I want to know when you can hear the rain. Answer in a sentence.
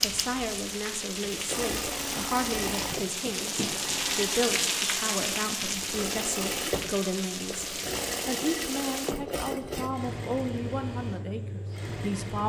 The rain can be heard from 0.0 to 9.2 s.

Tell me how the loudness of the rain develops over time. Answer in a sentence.
The volume of the rain goes up, then down.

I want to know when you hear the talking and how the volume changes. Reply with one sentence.
The talking can be heard from 0.0 to 12.4 s, at a steady volume.